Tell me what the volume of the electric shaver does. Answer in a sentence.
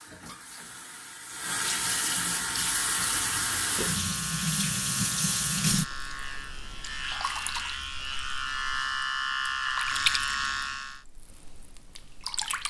The loudness of the electric shaver goes up.